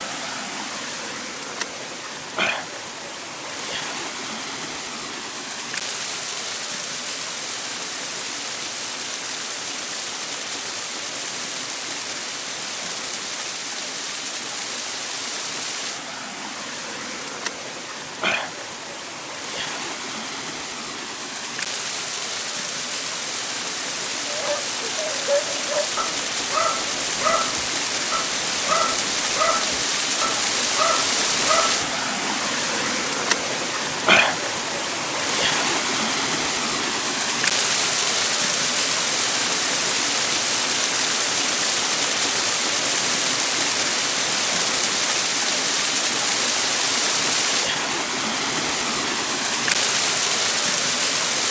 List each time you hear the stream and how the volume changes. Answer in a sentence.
The stream can be heard from 0.0 to 51.4 s, getting louder.